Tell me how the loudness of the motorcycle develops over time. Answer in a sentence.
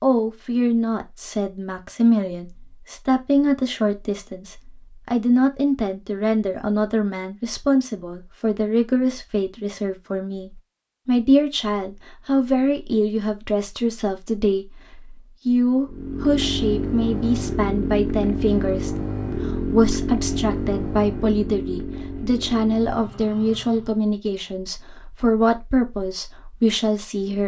The loudness of the motorcycle goes down.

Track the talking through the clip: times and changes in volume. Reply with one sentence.
The talking can be heard from 0.0 to 27.4 s, at a steady volume.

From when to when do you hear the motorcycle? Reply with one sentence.
The motorcycle can be heard from 15.8 to 24.0 s.